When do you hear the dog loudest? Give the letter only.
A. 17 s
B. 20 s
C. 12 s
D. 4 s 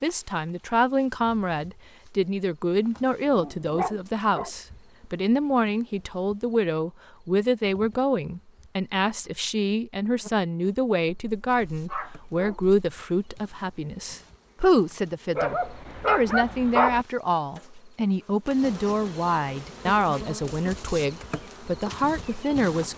A.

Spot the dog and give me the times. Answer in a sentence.
The dog can be heard from 3.2 to 4.5 s, from 11.1 to 12.8 s and from 15.3 to 17.1 s.